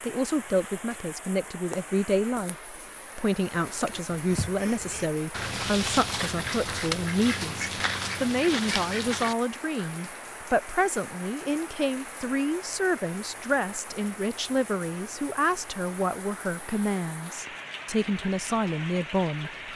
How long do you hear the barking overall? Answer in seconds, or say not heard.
not heard.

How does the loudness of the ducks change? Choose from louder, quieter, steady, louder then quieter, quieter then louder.
louder.